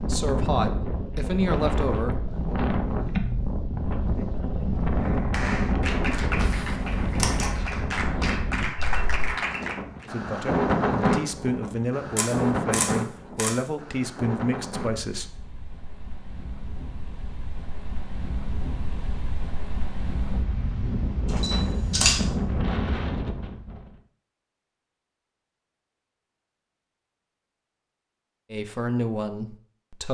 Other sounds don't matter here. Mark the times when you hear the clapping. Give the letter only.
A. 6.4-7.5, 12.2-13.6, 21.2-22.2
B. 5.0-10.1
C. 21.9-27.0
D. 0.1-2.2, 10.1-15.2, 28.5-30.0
B.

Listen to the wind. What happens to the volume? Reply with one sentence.
The volume of the wind goes down, then up.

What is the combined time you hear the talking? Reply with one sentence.
You can hear the talking for 9 seconds altogether.